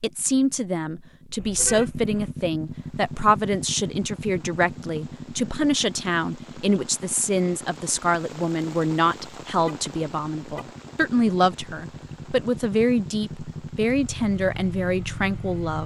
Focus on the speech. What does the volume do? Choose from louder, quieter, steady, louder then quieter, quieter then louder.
steady.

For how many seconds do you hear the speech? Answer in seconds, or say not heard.
16 s.